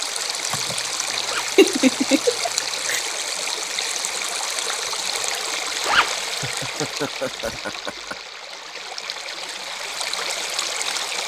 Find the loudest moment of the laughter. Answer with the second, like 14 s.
2 s.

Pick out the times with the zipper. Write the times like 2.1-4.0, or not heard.
1.2-1.6, 5.8-6.2.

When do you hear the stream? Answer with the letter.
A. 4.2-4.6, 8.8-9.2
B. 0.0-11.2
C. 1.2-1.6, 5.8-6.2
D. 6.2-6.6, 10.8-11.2
B.